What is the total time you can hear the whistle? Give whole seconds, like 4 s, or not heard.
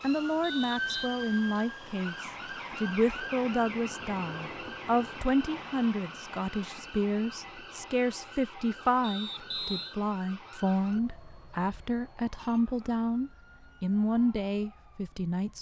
2 s.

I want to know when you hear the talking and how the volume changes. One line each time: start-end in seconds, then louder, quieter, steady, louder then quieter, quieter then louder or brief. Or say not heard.
0.0-15.5 steady.